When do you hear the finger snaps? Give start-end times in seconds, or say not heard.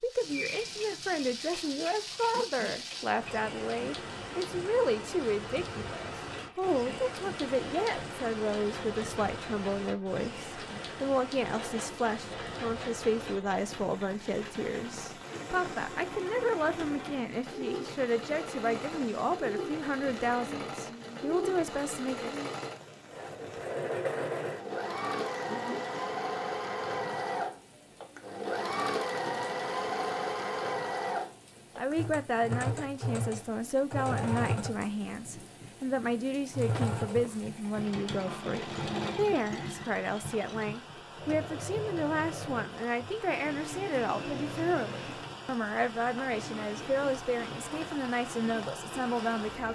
not heard.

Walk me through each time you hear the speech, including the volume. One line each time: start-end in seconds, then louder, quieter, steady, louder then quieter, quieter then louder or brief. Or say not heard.
0.0-22.4 steady
31.8-49.7 steady.